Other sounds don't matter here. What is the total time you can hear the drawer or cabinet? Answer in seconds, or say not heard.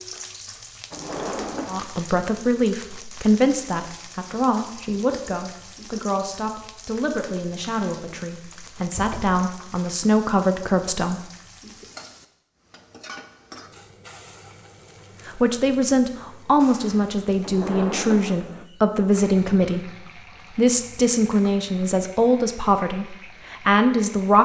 3 s.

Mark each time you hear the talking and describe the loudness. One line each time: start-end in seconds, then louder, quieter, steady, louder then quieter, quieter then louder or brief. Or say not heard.
1.6-11.2 quieter then louder
15.2-24.3 steady.